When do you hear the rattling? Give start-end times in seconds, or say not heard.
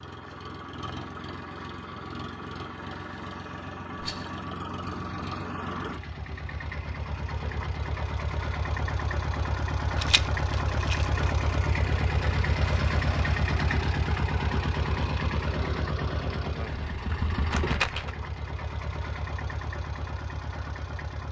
4.0-4.4, 9.9-11.2, 16.9-18.1.